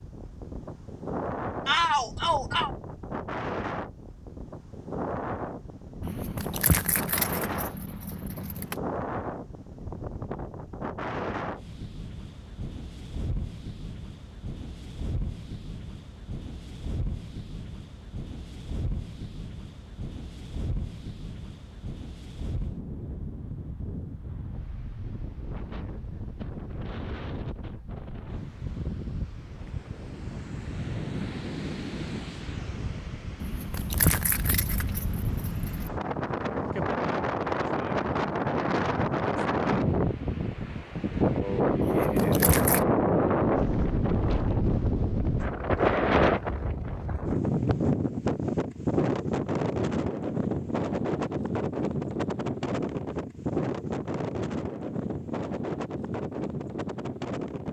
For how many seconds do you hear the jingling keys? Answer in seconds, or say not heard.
6 s.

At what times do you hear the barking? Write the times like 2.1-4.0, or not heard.
not heard.